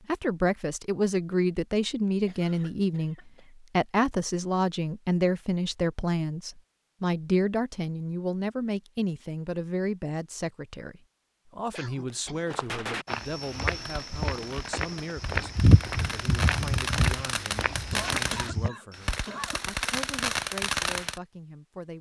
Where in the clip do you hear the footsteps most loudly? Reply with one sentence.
The loudest moment of the footsteps is at 16 seconds.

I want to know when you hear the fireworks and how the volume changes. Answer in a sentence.
You can hear the fireworks from 12.4 to 21.2 s, getting louder.